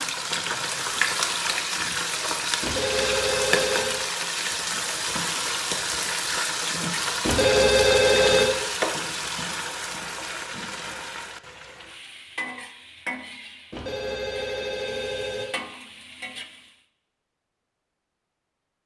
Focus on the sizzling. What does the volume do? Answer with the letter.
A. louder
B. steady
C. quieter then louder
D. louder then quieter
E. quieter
E.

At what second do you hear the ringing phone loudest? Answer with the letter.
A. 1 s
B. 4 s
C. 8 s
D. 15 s
C.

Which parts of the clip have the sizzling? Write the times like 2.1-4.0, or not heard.
0.0-16.8.